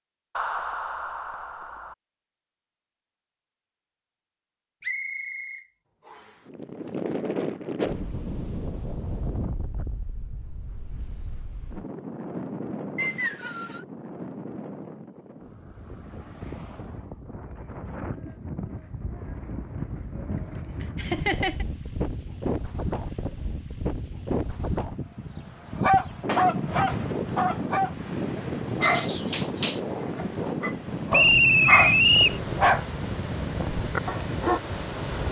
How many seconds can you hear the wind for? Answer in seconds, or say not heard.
29 s.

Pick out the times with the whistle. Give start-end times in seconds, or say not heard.
4.8-6.3, 12.9-13.8, 31.1-32.4.